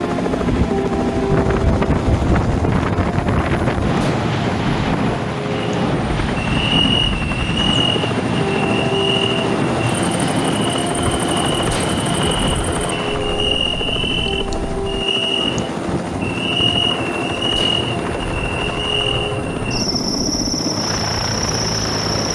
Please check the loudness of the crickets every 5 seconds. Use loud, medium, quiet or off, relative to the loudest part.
off, loud, loud, loud, loud.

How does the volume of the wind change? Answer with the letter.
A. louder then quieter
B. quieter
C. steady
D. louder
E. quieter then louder
B.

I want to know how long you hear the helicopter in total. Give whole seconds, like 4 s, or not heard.
22 s.